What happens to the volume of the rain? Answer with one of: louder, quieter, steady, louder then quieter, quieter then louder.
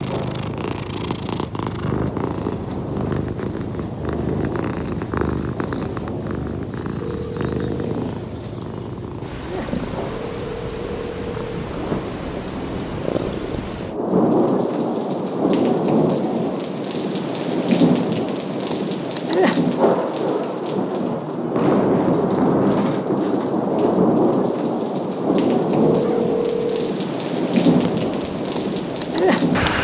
louder.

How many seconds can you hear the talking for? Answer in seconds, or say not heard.
not heard.